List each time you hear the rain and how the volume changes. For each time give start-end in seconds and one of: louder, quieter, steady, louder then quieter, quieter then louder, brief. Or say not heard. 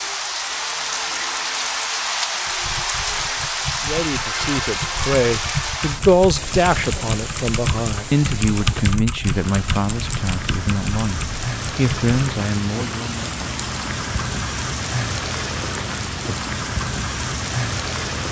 0.0-18.2 quieter then louder.